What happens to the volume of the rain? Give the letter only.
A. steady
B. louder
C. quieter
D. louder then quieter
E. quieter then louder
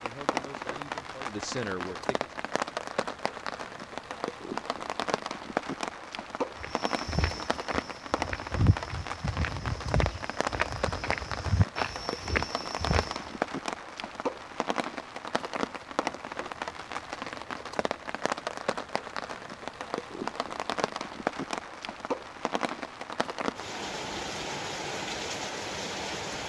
A.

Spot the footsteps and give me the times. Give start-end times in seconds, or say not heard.
6.6-13.2.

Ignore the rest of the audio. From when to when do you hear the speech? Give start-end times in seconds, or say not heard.
0.0-2.4.